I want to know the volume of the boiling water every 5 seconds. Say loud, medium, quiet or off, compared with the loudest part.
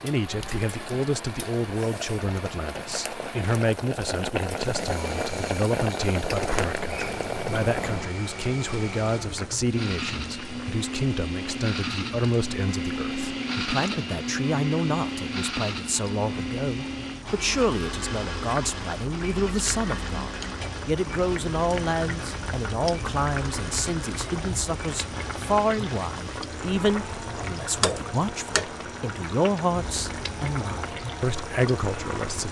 loud, loud, medium, medium, loud, loud, loud.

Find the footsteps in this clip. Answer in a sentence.
The footsteps can't be heard in this clip.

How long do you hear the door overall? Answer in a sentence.
The door can be heard for 2 seconds in total.